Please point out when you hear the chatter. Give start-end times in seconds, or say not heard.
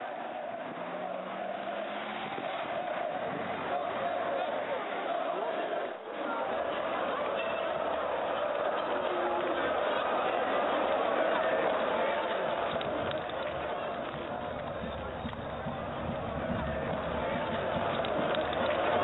0.0-18.9.